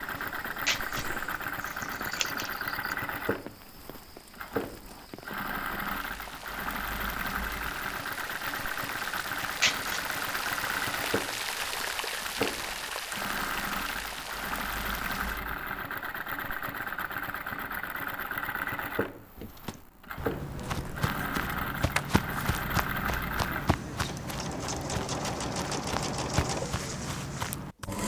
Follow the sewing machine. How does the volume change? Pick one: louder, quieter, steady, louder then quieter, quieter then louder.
steady.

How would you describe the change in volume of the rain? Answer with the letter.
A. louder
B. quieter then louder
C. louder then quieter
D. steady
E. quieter
A.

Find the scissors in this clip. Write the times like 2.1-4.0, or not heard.
0.7-3.0, 9.6-10.2, 20.7-22.6.